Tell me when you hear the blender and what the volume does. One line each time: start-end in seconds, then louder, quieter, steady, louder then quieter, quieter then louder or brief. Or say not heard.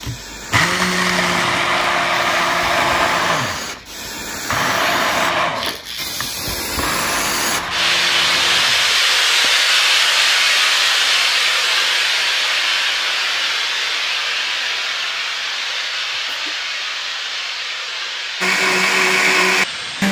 0.0-9.6 quieter
18.4-20.0 brief.